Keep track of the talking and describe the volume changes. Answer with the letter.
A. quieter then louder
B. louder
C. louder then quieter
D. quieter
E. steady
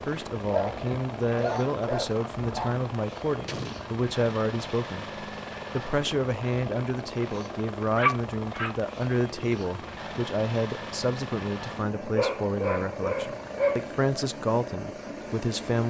E.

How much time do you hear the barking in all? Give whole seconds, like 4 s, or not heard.
5 s.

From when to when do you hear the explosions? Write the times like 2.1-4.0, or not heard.
3.5-4.0.